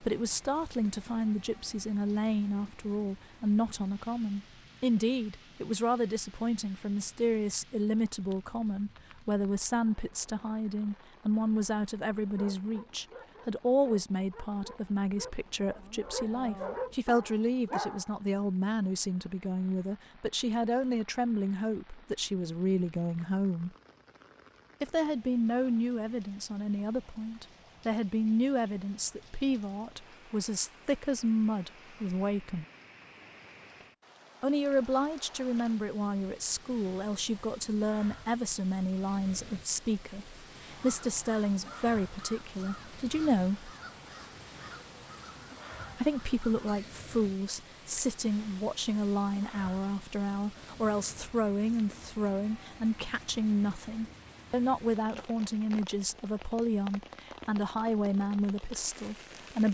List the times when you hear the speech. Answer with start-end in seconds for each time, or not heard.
0.0-23.8, 24.8-32.6, 34.4-43.7, 46.0-59.6.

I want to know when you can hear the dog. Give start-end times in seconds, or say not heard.
12.2-18.1.